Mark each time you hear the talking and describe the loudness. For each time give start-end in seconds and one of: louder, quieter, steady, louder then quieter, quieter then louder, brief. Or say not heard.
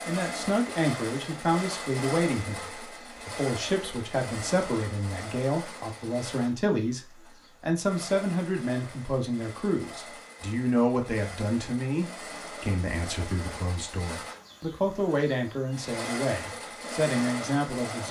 0.1-18.0 steady.